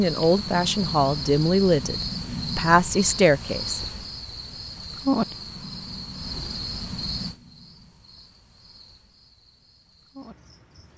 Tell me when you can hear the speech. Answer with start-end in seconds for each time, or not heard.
0.0-3.8.